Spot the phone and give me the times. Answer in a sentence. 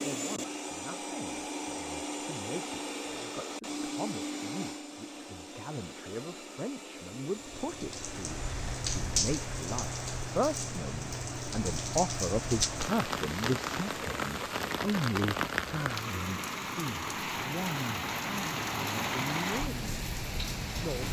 You can't hear the phone here.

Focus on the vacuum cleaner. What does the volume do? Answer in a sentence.
The volume of the vacuum cleaner goes down.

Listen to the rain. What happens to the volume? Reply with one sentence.
The volume of the rain stays about the same.